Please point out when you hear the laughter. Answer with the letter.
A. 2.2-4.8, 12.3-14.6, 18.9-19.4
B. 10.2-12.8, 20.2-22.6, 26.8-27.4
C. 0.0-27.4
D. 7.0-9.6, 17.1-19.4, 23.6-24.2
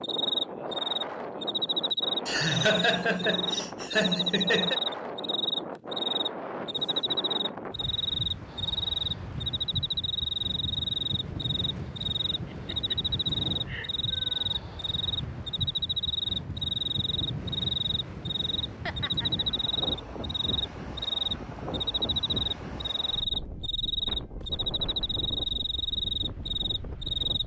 A.